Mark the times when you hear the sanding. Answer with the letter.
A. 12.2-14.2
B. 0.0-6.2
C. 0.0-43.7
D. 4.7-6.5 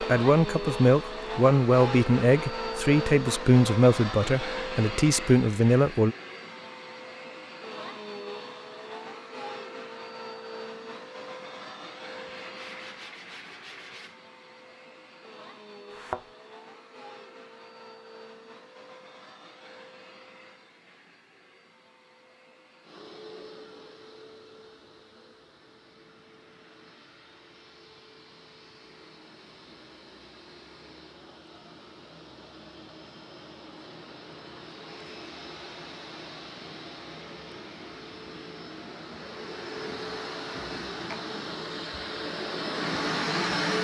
A.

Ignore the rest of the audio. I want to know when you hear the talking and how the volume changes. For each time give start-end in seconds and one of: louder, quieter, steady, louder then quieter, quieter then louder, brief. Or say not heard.
0.0-6.2 steady.